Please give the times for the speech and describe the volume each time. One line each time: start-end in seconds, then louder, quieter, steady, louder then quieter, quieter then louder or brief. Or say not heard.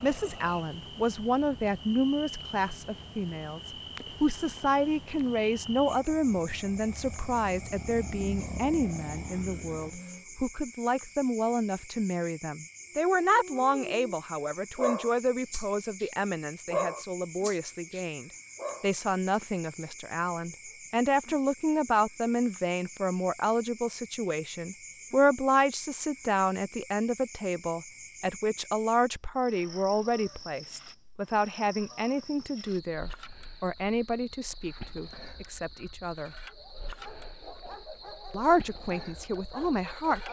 0.0-36.3 steady
38.3-40.2 brief.